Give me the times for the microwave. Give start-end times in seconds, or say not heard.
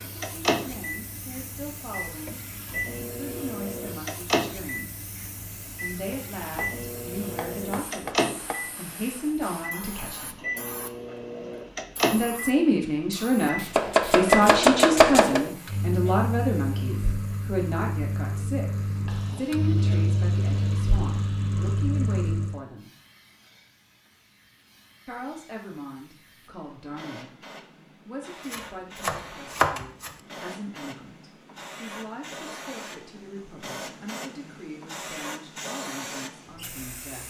0.0-22.6.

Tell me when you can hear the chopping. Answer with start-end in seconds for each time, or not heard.
6.5-8.6, 13.7-15.4, 28.5-30.1.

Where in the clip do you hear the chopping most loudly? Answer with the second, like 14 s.
15 s.